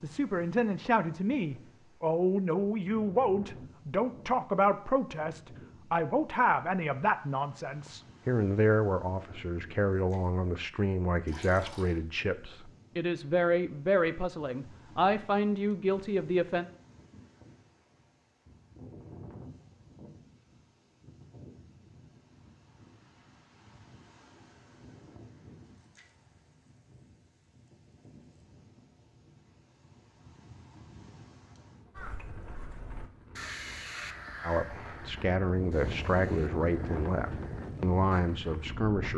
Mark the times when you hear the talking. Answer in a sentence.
The talking can be heard from 0.0 to 16.6 s and from 34.4 to 39.1 s.